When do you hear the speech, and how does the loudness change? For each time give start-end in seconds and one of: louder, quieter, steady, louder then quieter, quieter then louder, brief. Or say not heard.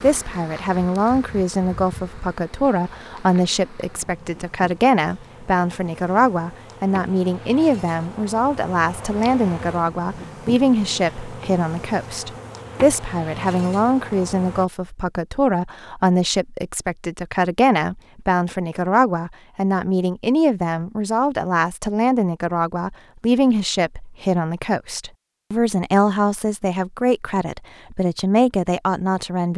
0.0-29.5 steady.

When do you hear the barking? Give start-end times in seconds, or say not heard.
not heard.